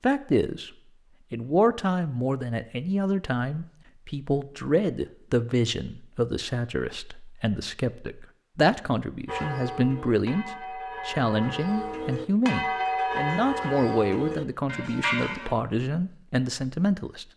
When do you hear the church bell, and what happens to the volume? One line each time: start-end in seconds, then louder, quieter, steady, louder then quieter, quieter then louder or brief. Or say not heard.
9.2-15.6 louder.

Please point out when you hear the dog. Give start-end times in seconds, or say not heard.
not heard.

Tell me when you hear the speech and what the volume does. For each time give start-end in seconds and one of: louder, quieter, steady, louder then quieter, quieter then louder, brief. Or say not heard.
0.0-0.7 brief
1.3-17.2 steady.